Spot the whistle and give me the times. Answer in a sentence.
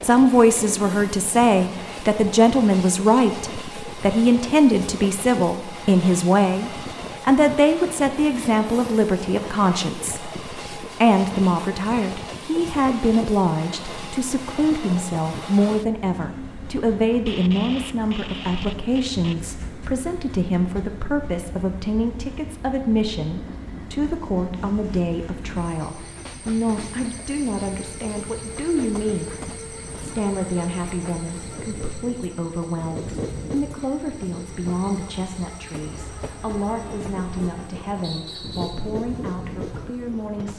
The whistle can be heard from 38.0 to 38.9 s.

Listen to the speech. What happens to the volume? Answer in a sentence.
The volume of the speech goes down.